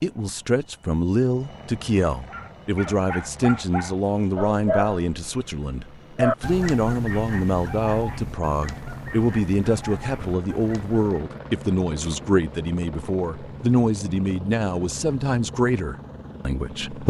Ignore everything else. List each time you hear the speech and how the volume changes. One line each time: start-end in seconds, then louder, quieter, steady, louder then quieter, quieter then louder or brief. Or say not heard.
0.0-17.0 steady.